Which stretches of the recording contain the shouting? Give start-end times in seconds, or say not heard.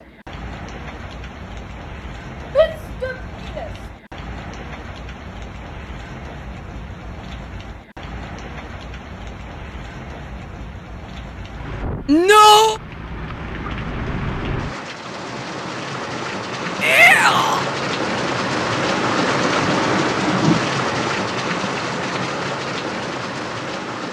2.5-3.7, 12.1-12.8, 16.8-17.6.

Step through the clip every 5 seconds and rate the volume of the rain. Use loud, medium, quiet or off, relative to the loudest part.
quiet, quiet, medium, loud, loud.